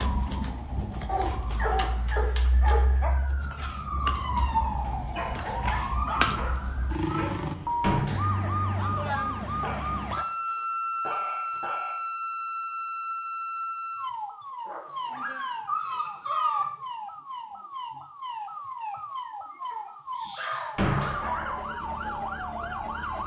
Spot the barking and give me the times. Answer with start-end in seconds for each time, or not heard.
1.1-3.1, 5.2-7.5, 9.6-11.9, 14.7-16.6, 19.7-21.6.